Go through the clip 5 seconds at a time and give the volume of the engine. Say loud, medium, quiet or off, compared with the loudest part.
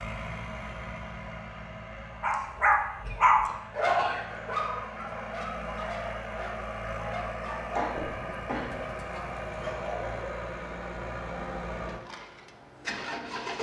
medium, loud, loud.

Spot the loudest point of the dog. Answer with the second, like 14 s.
3 s.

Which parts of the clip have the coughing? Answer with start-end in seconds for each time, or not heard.
3.0-4.2, 7.8-8.8.